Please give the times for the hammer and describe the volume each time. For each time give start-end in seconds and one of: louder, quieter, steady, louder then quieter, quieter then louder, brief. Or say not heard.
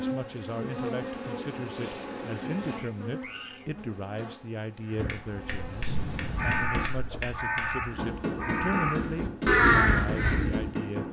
5.0-11.0 louder.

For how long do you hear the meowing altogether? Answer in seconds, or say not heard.
2 s.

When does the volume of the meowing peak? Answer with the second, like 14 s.
6 s.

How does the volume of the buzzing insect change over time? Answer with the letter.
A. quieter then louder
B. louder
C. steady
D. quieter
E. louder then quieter
D.